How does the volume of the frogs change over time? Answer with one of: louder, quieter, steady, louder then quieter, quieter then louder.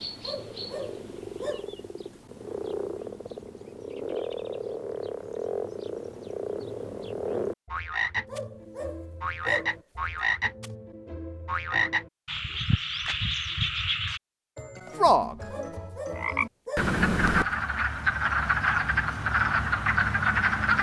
louder.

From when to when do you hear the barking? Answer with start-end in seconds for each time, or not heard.
0.2-1.8, 8.2-9.8, 15.5-16.9.